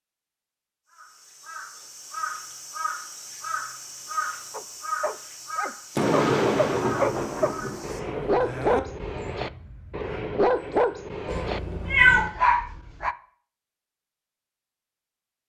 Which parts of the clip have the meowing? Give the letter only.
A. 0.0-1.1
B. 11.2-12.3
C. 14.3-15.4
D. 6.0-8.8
B.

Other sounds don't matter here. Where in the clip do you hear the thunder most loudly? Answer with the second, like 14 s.
6 s.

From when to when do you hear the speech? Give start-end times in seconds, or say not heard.
not heard.